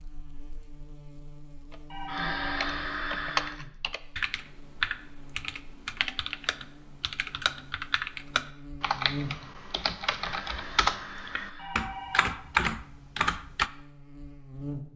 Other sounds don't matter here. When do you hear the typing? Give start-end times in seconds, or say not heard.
1.7-13.7.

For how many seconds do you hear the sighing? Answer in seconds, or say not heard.
3 s.